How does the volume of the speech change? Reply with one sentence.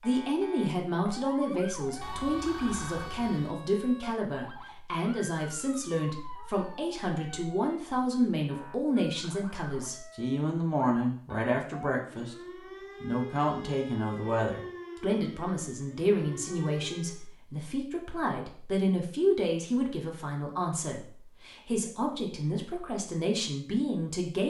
The volume of the speech stays about the same.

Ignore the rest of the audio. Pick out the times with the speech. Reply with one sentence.
The speech can be heard from 0.0 to 12.3 s and from 13.0 to 24.4 s.